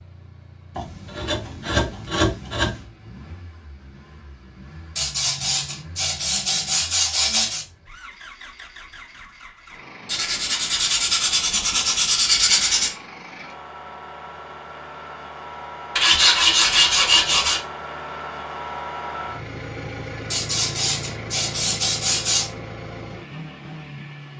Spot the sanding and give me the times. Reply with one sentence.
You can hear the sanding from 0.8 to 2.9 s, from 5.0 to 7.7 s, from 10.1 to 12.9 s, from 15.9 to 17.6 s and from 20.3 to 22.5 s.